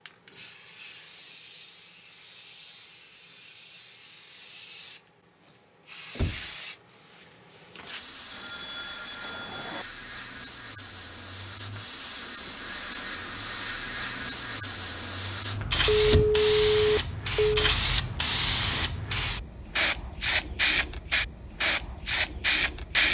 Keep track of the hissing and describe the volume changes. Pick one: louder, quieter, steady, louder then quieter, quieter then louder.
louder.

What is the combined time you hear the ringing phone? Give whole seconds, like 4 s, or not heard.
3 s.